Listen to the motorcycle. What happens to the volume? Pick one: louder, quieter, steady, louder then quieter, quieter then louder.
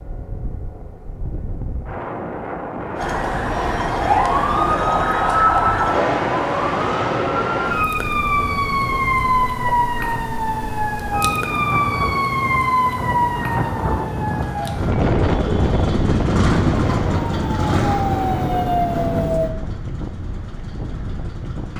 louder then quieter.